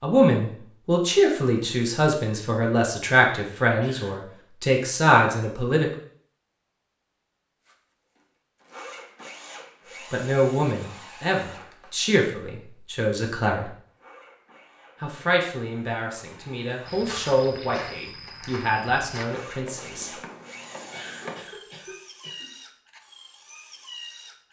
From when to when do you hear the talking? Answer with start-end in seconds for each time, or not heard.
0.0-5.9, 10.1-13.7, 15.0-20.1.